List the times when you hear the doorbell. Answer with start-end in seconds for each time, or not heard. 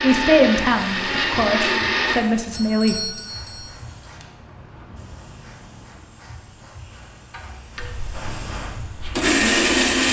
2.5-3.7.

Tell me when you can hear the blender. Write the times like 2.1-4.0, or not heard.
0.0-2.2, 7.3-10.0.